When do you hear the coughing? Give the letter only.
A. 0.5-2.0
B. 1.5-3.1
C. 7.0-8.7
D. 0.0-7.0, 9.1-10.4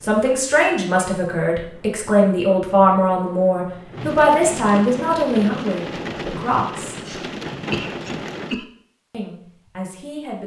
C.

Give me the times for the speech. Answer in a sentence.
The speech can be heard from 0.0 to 7.0 s and from 9.1 to 10.4 s.